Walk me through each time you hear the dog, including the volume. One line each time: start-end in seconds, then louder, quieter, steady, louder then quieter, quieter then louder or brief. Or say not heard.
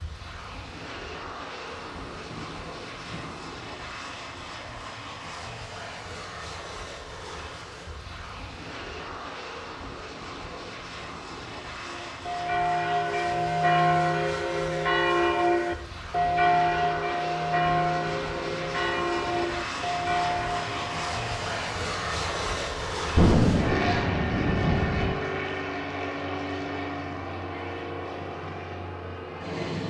not heard.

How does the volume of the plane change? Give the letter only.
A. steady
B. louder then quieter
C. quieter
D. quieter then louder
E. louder
E.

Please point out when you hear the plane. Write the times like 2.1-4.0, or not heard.
0.0-29.8.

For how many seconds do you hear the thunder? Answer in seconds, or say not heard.
4 s.